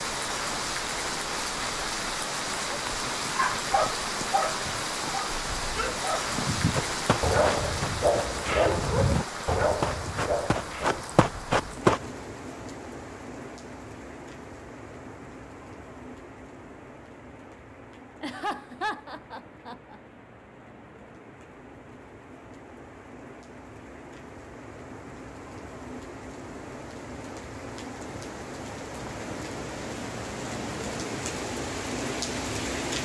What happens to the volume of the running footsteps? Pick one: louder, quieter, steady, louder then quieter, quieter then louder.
quieter then louder.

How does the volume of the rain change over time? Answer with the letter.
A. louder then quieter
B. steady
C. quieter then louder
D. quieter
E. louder
C.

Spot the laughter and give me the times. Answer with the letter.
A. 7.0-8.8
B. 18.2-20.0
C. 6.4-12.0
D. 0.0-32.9
B.